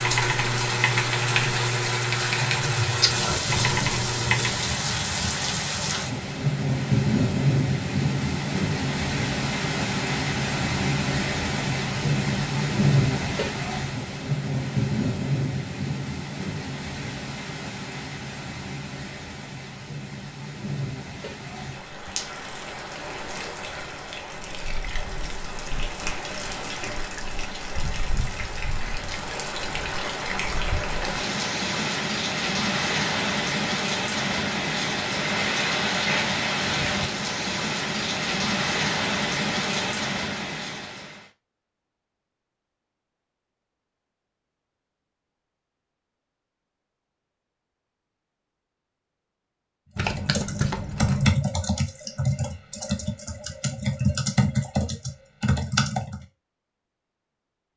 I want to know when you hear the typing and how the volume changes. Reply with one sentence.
The typing can be heard from 0.0 to 4.8 s, at a steady volume; and from 50.0 to 56.2 s, getting quieter then louder.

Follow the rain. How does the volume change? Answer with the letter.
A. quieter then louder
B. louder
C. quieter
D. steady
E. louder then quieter
A.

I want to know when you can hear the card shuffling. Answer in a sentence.
You can hear the card shuffling from 50.0 to 51.5 s.